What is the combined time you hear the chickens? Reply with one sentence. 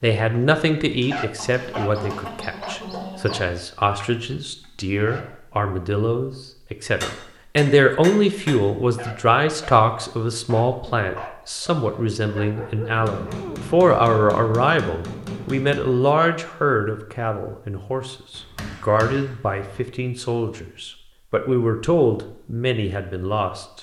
The chickens can be heard for 2 seconds in total.